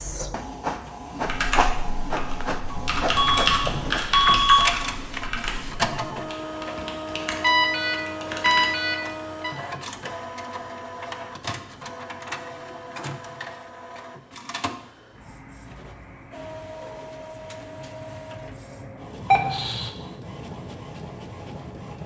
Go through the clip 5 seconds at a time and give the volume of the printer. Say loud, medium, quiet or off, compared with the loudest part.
loud, loud, medium, medium, medium.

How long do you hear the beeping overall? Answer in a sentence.
You can hear the beeping for 4 seconds altogether.